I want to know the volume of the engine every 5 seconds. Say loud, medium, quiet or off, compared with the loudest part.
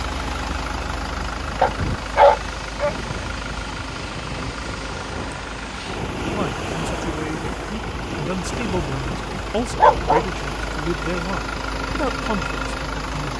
loud, medium, loud.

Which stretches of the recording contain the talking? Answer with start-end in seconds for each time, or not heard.
6.3-13.3.